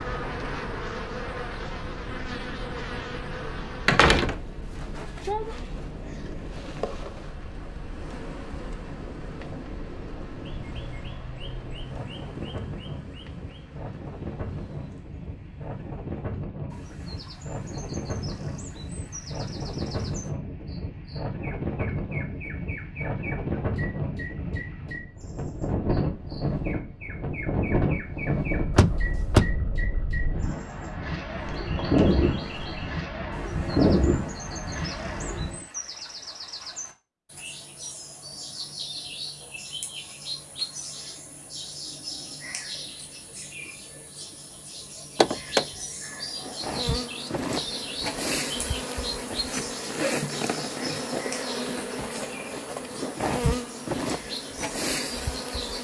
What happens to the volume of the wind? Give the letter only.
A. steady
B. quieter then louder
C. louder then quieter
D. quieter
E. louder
E.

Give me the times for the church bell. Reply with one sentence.
You can't hear the church bell here.